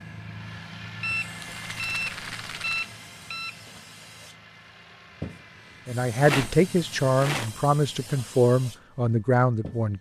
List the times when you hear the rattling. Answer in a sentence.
The rattling can be heard from 1.4 to 2.9 s and from 6.2 to 7.5 s.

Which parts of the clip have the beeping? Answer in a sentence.
You can hear the beeping from 1.0 to 3.5 s.